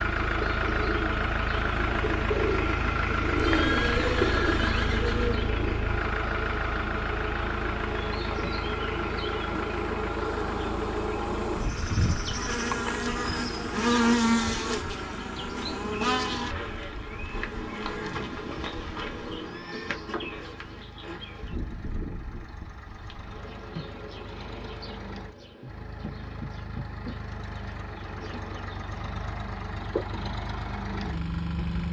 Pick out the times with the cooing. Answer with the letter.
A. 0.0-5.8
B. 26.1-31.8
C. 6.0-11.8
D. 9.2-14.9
A.